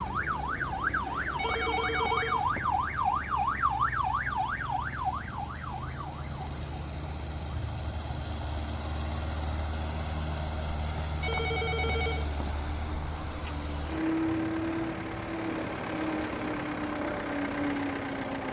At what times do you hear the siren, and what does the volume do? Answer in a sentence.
The siren can be heard from 0.0 to 18.4 s, getting quieter.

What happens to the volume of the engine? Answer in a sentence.
The loudness of the engine goes up.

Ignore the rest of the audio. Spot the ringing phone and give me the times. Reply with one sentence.
You can hear the ringing phone from 1.2 to 2.8 s and from 11.1 to 12.6 s.